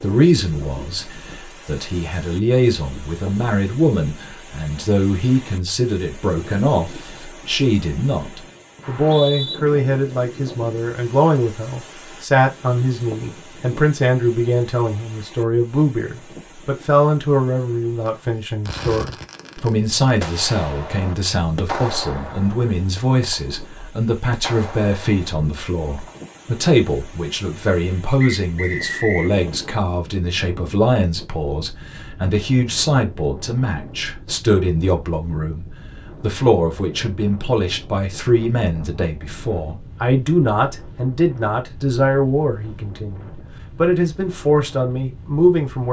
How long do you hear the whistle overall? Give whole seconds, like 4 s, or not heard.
2 s.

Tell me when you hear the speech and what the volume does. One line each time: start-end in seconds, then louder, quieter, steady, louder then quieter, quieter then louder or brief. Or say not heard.
0.0-45.8 steady.